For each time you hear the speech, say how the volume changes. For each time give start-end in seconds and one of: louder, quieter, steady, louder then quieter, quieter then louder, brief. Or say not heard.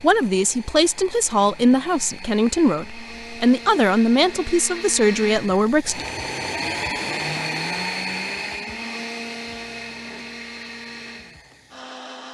0.0-6.0 steady.